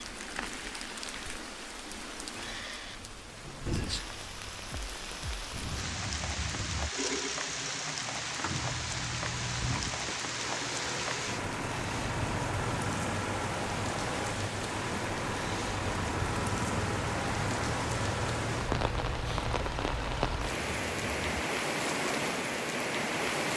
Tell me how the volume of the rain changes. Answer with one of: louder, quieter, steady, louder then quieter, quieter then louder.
louder.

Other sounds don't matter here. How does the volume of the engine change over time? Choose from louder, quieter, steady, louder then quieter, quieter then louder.
steady.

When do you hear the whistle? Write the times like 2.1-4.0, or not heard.
not heard.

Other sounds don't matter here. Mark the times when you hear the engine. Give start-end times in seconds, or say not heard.
6.9-20.5.